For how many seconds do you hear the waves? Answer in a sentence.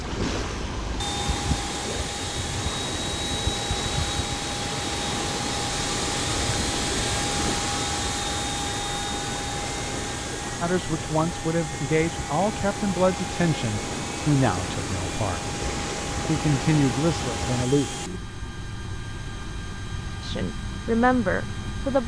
The waves can be heard for 18 seconds in total.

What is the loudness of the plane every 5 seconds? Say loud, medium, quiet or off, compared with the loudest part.
loud, loud, medium, medium, medium.